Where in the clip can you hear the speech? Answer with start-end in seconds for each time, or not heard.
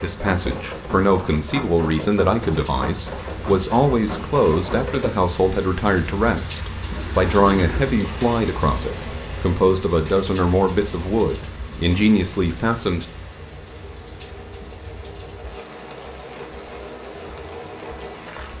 0.0-13.1.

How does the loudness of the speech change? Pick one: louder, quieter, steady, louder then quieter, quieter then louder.
steady.